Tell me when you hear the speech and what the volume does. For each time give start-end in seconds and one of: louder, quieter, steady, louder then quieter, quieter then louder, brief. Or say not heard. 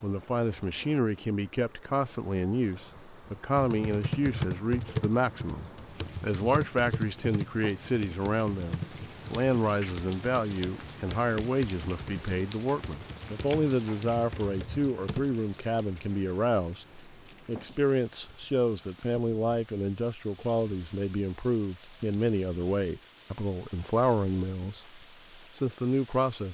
0.0-26.4 steady.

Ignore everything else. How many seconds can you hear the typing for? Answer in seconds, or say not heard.
12 s.